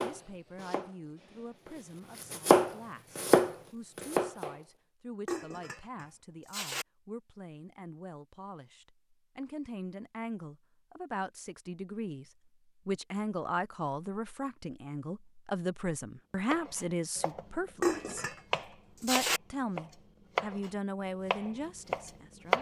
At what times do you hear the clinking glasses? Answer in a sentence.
You can hear the clinking glasses from 5.2 to 6.8 s and from 17.8 to 19.4 s.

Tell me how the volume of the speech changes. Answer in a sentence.
The loudness of the speech goes up.